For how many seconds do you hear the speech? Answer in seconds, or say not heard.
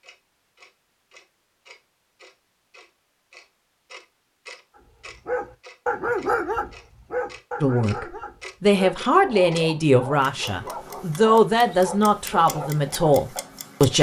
6 s.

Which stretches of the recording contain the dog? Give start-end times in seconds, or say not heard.
4.8-13.6.